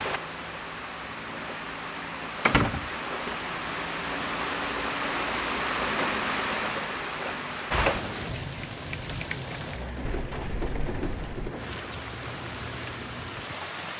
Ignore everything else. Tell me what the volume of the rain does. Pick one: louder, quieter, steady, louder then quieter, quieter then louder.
louder then quieter.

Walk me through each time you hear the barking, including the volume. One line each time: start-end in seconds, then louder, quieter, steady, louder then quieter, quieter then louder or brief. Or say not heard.
not heard.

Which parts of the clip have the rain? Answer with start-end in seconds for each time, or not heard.
0.0-13.9.